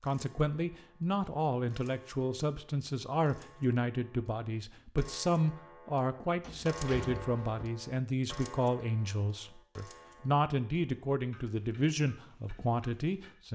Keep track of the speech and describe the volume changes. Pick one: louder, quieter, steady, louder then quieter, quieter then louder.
steady.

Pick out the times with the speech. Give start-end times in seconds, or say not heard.
0.0-13.5.